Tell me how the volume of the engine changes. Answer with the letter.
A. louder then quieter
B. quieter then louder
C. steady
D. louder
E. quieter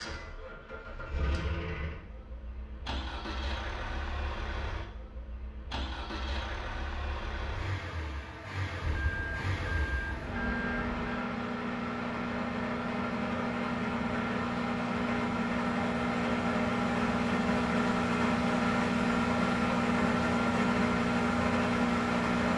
D.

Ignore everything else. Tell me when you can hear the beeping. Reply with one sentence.
The beeping can be heard from 8.8 to 11.1 s.